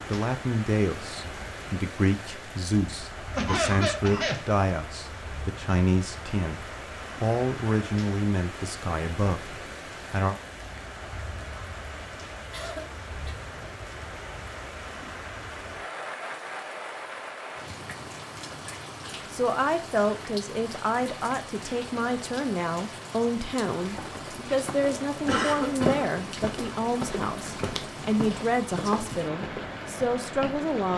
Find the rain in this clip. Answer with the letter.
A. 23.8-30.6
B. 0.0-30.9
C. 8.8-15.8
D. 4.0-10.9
B.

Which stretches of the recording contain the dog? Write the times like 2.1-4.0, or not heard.
not heard.